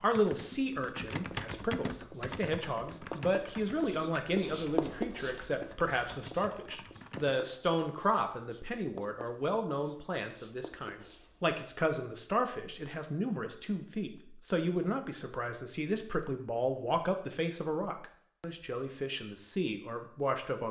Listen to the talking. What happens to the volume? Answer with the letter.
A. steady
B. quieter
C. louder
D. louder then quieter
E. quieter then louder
A.